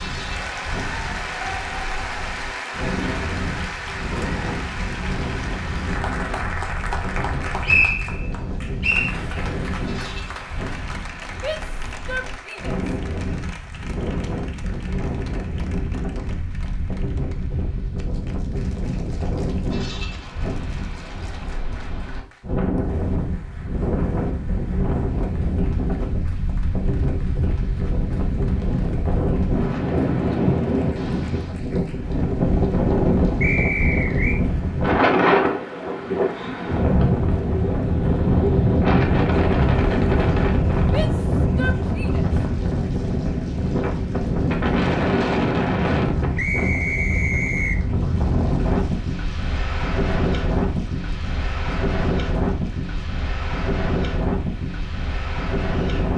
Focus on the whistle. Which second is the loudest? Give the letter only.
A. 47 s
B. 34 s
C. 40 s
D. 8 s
D.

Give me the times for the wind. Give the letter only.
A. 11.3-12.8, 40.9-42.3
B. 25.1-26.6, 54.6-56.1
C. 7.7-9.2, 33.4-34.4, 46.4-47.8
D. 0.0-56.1
D.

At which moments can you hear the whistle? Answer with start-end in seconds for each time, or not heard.
7.7-9.2, 33.4-34.4, 46.4-47.8.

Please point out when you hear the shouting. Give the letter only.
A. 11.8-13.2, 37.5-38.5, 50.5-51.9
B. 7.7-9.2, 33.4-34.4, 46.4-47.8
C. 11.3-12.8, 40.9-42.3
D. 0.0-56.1
C.